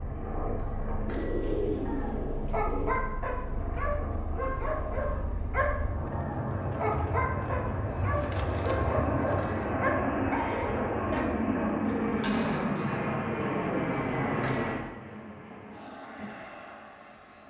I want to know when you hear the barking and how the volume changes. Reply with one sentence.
You can hear the barking from 1.9 to 11.2 s, at a steady volume.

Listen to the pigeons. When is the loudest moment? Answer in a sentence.
The volume of the pigeons peaks at 2 seconds.